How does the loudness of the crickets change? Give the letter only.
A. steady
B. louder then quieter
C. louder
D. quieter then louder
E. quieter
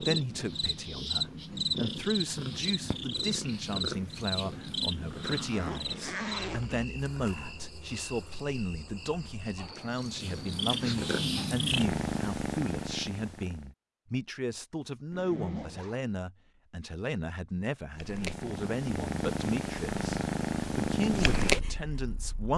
E.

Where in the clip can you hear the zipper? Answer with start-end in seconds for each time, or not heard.
5.1-6.8, 15.1-16.0.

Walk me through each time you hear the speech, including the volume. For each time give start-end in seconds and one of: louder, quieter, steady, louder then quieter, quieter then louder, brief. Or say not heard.
0.0-22.5 steady.